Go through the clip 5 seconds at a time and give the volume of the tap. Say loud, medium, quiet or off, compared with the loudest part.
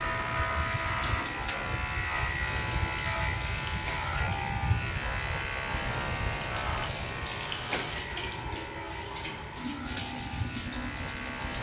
medium, loud, loud.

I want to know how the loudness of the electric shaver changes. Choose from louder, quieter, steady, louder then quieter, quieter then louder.
quieter.